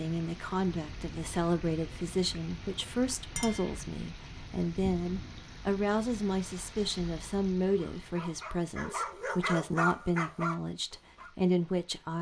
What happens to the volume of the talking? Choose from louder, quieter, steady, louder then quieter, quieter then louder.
steady.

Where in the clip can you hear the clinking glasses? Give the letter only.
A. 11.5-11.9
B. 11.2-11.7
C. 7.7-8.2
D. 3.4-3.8
D.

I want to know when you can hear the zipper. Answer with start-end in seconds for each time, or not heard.
not heard.